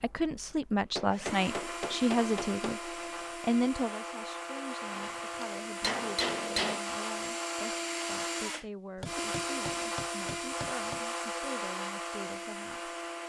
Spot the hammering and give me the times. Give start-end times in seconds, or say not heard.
0.8-2.6, 4.9-6.8, 9.0-11.0.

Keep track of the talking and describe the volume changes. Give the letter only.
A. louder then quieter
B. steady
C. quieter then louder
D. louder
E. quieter
E.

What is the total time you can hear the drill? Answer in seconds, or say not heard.
13 s.